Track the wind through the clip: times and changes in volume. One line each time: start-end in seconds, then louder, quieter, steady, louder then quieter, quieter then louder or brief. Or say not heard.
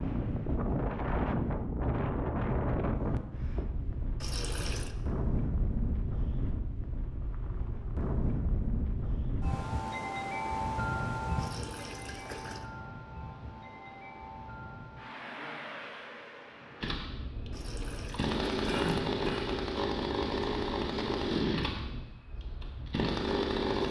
0.0-23.7 quieter.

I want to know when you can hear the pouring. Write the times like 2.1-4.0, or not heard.
4.2-5.0, 11.3-12.7, 17.5-18.9.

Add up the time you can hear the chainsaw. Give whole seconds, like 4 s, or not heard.
7 s.